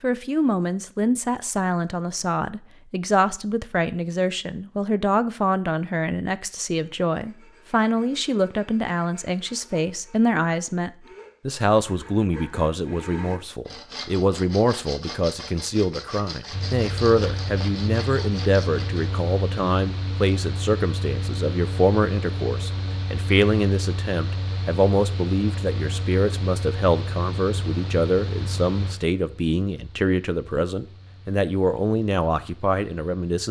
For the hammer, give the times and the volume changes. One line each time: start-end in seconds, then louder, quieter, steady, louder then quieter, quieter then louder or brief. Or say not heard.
not heard.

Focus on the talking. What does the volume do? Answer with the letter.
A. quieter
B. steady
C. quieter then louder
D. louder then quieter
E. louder
B.